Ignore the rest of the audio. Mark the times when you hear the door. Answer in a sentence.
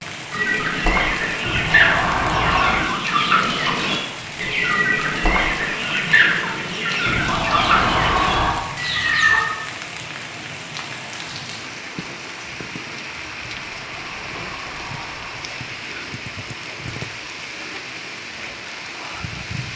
The door can be heard from 1.4 to 2.9 s, from 7.0 to 8.7 s and from 13.4 to 15.8 s.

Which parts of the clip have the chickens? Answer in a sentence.
The chickens can be heard from 0.3 to 9.4 s.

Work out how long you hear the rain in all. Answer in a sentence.
You can hear the rain for 20 seconds altogether.